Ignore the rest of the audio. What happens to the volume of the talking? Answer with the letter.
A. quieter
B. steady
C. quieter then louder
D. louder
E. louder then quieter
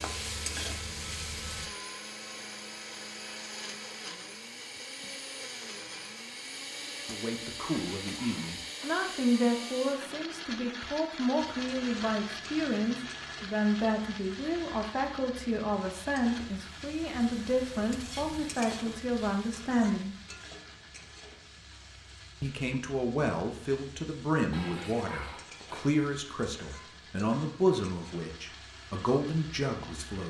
B.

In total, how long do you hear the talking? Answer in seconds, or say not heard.
21 s.